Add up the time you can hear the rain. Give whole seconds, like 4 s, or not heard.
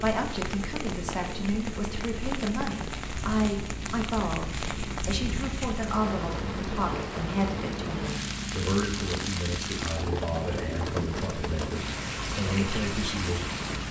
14 s.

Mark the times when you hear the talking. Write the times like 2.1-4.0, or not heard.
0.0-13.8.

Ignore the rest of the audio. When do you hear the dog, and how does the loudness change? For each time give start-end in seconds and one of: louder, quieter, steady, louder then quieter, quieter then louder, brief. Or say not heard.
not heard.